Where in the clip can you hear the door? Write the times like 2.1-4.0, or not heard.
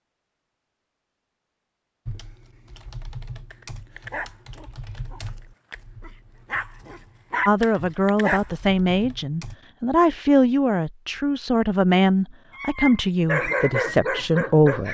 not heard.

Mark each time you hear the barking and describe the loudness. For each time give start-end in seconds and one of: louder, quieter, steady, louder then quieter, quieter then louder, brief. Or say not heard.
3.5-8.4 quieter then louder
12.6-14.8 brief.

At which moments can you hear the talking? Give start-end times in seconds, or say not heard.
7.5-14.8.